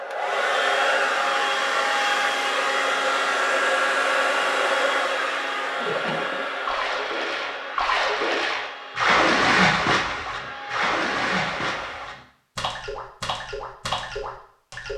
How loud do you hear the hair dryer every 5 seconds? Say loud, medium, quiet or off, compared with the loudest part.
loud, medium, quiet.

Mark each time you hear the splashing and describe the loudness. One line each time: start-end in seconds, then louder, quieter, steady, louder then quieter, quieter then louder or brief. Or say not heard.
5.8-14.9 louder then quieter.